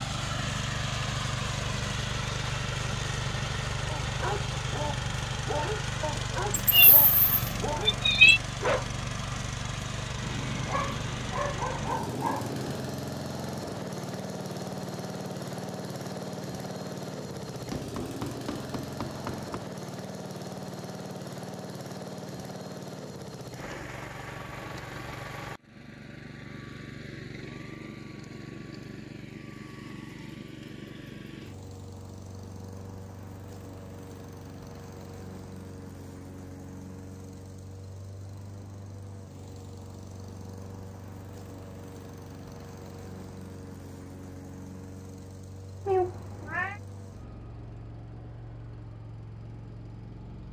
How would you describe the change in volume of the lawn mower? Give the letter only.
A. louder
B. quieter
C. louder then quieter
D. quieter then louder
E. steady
B.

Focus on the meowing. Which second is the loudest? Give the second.
8 s.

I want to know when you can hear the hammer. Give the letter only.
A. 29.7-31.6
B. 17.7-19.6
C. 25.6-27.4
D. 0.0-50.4
B.